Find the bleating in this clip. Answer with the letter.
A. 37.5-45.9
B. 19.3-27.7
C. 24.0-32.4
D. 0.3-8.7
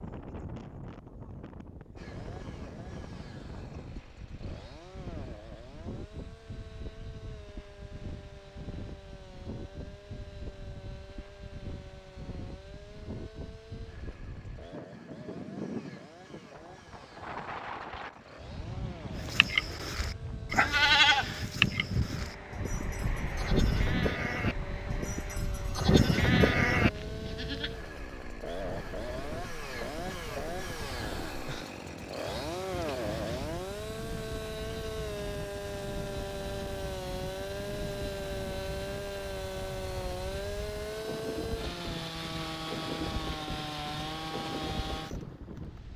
B.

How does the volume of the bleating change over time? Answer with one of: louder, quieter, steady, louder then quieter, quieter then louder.
quieter then louder.